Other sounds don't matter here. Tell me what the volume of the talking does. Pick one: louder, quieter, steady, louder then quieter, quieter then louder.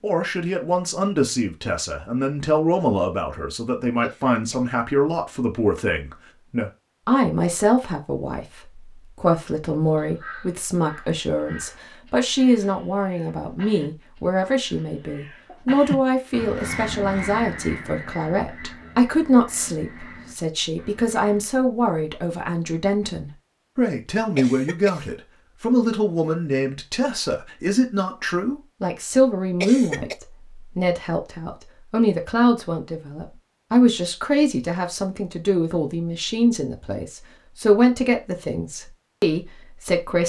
steady.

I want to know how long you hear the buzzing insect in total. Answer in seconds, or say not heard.
not heard.